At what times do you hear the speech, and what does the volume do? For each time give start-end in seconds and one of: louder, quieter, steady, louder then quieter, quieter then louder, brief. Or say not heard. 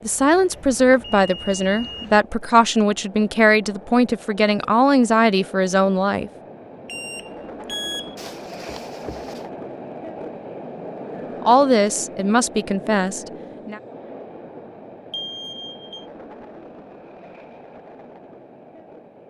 0.0-6.3 steady
11.4-13.8 brief.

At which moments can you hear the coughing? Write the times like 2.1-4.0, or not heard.
8.2-9.4.